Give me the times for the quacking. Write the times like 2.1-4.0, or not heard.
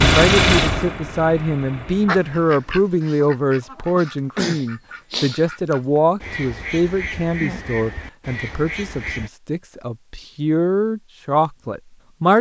2.0-9.3.